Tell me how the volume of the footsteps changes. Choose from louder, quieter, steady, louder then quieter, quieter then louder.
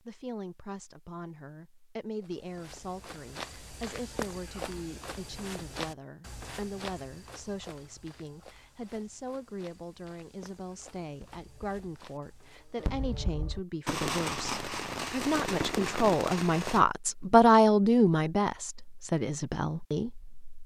quieter.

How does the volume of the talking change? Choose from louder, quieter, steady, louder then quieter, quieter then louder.
louder.